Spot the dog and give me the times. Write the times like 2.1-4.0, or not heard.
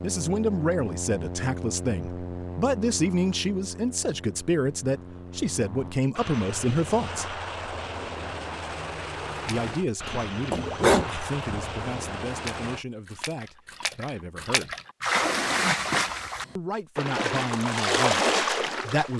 10.5-11.9.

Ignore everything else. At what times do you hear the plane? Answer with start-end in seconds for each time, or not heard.
0.0-12.8.